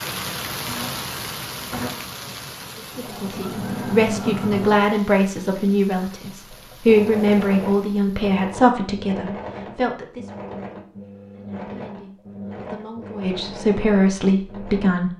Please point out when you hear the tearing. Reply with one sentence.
The tearing can't be heard in this clip.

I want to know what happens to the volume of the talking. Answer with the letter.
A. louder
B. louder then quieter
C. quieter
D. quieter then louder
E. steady
D.